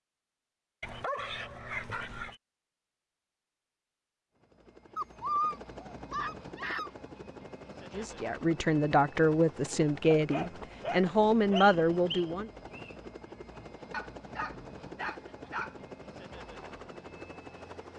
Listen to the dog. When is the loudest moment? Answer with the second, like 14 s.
5 s.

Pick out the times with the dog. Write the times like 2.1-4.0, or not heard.
0.8-2.4, 5.0-6.9, 10.1-11.7, 13.9-15.8.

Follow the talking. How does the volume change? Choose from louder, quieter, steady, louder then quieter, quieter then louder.
steady.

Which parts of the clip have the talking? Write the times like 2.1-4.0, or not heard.
8.0-12.5.